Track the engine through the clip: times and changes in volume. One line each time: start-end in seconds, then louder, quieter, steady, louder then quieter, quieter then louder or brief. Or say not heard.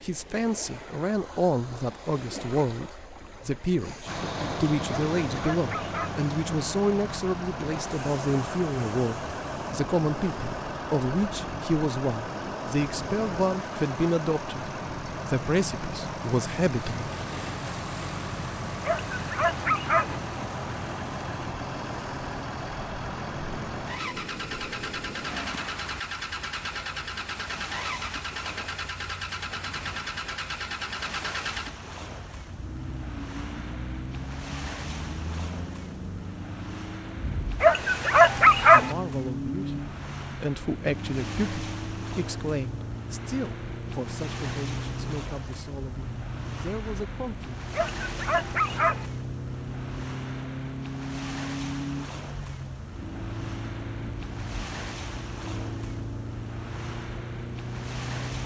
4.0-58.4 steady.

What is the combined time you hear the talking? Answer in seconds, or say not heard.
26 s.